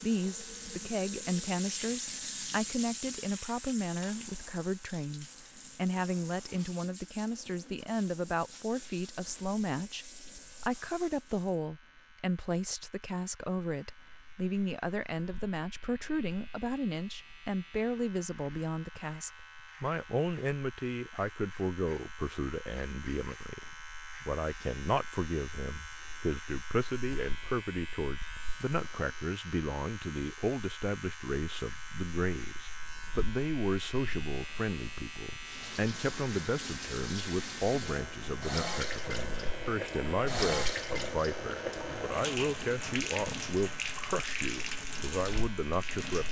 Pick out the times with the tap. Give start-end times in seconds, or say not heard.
0.0-11.6, 35.4-46.2.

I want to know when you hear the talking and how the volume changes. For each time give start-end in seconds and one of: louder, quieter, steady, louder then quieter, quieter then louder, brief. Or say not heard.
0.0-46.2 steady.